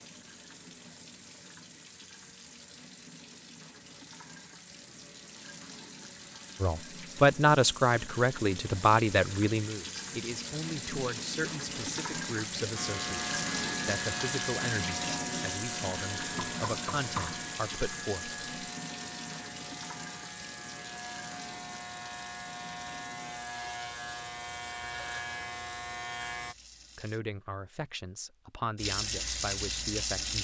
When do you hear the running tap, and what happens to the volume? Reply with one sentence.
The running tap can be heard from 0.0 to 27.2 s, getting louder then quieter; and briefly from 28.8 to 30.4 s.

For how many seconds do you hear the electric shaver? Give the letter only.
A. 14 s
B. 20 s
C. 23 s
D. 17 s
A.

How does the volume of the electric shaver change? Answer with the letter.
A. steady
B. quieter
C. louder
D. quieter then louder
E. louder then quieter
D.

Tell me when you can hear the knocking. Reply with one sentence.
You can hear the knocking from 16.4 to 17.4 s.